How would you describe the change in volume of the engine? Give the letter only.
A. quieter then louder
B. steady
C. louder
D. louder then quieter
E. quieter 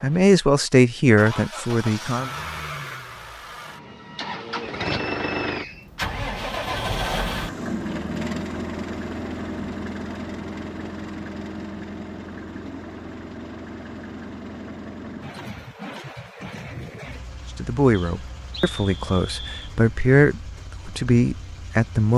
D.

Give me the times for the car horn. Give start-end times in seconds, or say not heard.
not heard.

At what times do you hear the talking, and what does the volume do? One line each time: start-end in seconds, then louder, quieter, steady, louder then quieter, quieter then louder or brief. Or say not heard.
0.0-2.3 brief
17.6-22.1 louder.